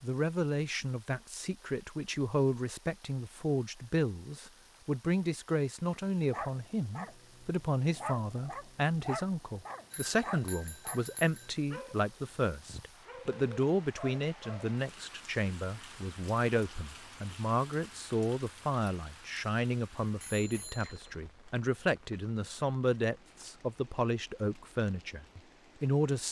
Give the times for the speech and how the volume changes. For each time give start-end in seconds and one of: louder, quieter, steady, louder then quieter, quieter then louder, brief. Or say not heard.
0.0-26.2 steady.